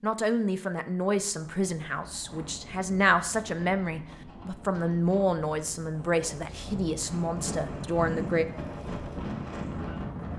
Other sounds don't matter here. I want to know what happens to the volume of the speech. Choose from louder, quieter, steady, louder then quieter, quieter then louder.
steady.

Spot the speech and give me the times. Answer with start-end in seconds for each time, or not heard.
0.0-8.4.